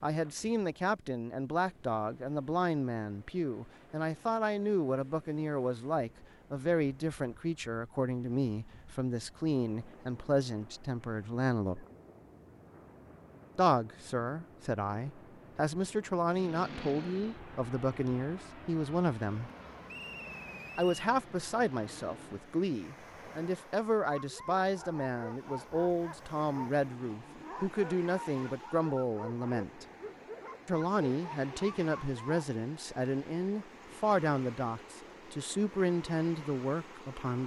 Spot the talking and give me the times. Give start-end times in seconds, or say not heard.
0.0-11.8, 13.6-19.5, 20.8-29.9, 30.6-37.4.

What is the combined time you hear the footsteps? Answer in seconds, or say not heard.
not heard.